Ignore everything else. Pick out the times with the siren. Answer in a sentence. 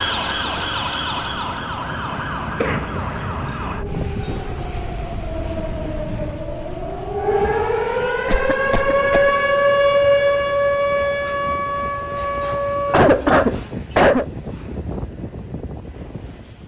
The siren can be heard from 0.0 to 13.1 s.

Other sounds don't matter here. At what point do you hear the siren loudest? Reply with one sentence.
The volume of the siren peaks at 10 seconds.